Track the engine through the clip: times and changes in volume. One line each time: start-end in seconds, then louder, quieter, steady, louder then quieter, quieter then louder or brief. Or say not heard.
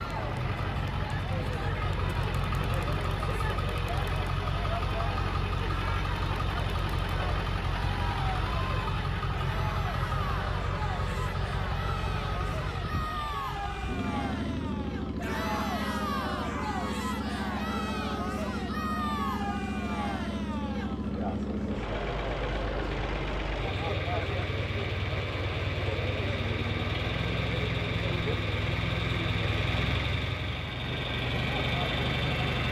0.0-32.6 steady.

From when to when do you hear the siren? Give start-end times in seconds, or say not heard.
not heard.